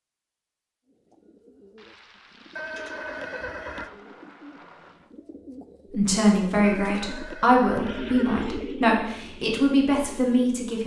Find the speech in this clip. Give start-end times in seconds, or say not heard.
5.9-10.8.